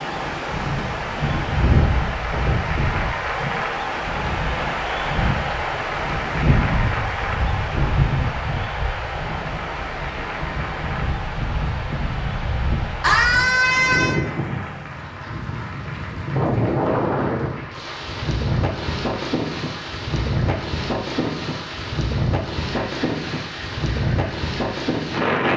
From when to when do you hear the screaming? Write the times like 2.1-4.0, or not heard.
13.0-14.2.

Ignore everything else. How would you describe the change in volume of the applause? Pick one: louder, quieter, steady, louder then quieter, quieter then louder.
quieter.